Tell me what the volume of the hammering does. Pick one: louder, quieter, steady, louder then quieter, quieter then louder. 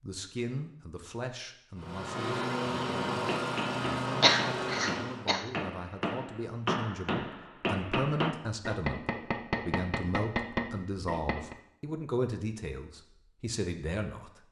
louder.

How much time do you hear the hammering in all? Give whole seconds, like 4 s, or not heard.
8 s.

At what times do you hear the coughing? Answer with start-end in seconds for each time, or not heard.
4.2-5.5.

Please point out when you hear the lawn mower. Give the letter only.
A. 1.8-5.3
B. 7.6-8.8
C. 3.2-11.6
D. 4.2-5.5
A.